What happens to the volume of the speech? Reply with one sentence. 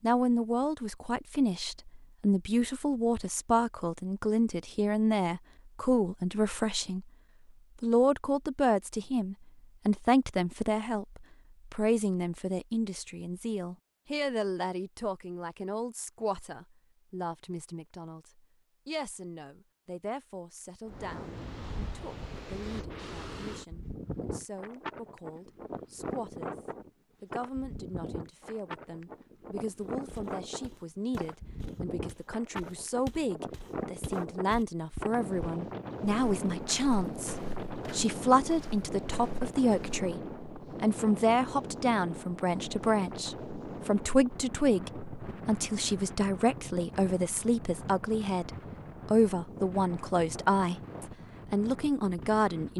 The loudness of the speech goes down, then up.